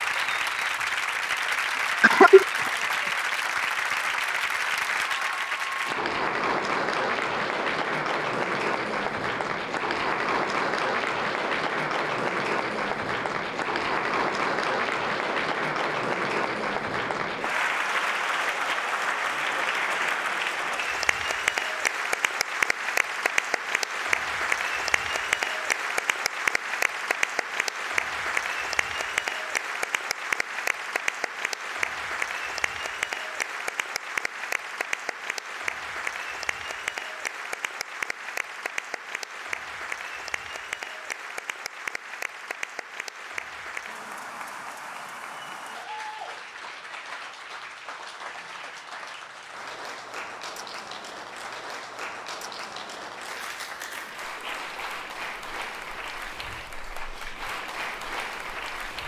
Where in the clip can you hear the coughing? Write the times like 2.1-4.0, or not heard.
2.0-2.6.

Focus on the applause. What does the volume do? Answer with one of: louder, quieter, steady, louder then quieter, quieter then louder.
quieter.